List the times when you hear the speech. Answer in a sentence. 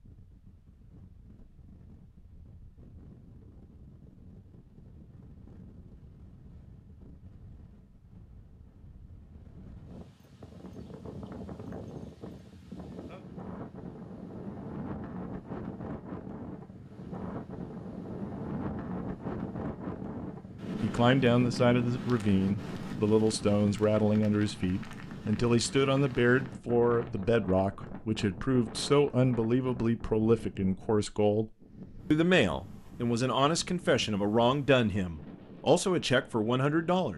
The speech can be heard from 20.8 to 31.5 s and from 32.1 to 37.1 s.